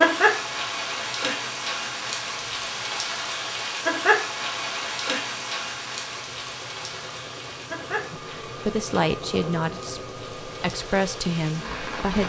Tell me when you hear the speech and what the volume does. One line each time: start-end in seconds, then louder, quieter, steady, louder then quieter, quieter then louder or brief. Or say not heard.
8.1-12.2 quieter then louder.